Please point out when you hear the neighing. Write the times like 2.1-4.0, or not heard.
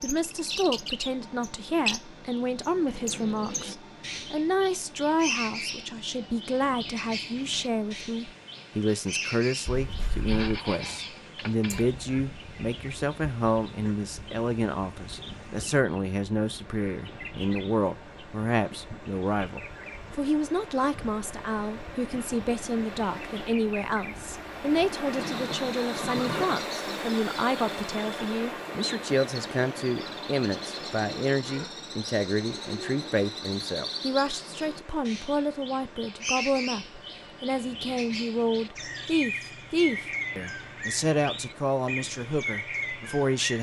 9.7-10.6, 25.1-26.6.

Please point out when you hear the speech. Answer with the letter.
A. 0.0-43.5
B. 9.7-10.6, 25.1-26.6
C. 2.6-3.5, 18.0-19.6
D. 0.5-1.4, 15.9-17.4
A.